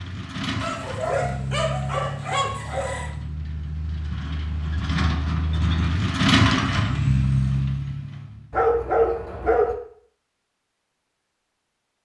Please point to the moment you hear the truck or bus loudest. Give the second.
7 s.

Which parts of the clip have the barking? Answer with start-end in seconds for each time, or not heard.
0.6-3.1, 8.5-9.8.